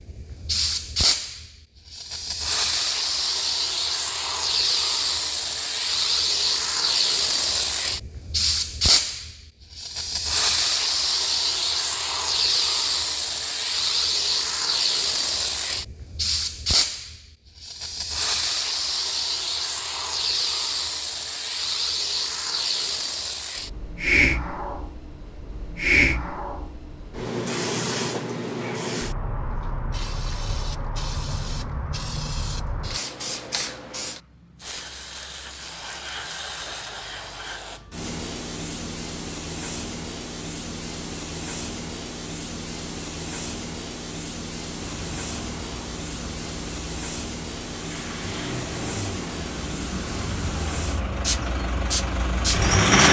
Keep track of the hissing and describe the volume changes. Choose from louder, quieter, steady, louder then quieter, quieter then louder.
quieter.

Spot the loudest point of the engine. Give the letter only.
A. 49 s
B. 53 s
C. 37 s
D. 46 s
B.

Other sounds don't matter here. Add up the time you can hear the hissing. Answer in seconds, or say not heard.
53 s.